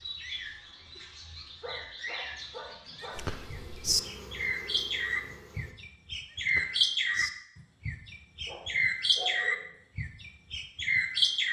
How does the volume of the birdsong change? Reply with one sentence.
The loudness of the birdsong goes up.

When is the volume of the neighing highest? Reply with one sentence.
The loudest moment of the neighing is at 4 seconds.